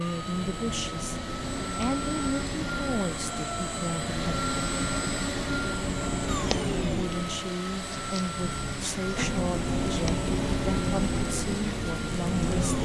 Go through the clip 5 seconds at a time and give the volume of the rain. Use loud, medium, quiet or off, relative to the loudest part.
medium, loud, loud.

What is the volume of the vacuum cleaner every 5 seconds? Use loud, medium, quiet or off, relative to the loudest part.
loud, loud, medium.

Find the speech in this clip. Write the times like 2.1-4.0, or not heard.
0.0-4.3, 6.8-12.8.